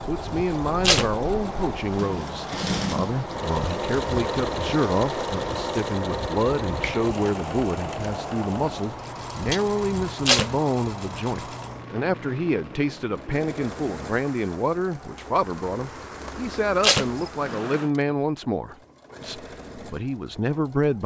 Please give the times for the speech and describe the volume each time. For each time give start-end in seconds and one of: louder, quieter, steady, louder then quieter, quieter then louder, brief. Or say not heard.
0.0-21.0 steady.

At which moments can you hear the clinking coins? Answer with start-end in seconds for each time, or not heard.
not heard.